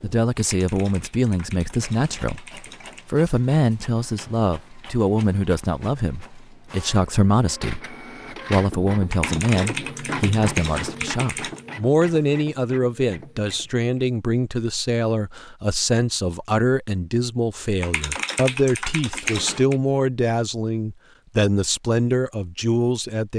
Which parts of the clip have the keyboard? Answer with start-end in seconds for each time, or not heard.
0.3-3.0, 9.1-11.7, 17.8-19.8.